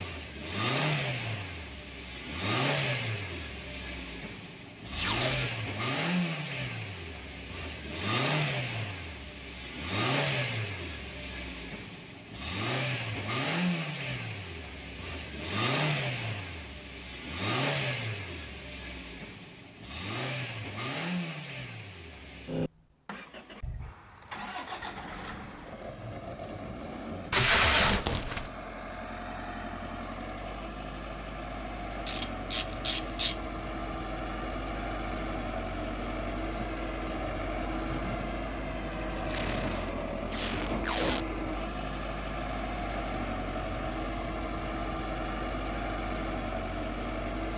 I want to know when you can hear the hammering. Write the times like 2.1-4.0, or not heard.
not heard.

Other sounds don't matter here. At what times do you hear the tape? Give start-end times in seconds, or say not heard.
4.9-5.5, 27.3-28.5, 39.2-41.2.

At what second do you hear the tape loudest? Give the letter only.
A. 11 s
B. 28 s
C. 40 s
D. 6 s
B.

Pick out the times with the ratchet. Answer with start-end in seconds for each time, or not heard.
32.0-33.4.